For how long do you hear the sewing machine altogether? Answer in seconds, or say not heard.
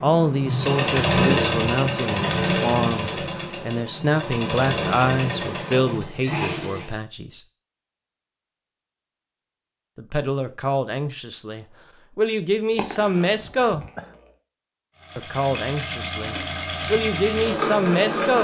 10 s.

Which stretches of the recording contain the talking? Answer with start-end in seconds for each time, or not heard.
0.0-7.5, 9.9-13.8, 15.2-18.3.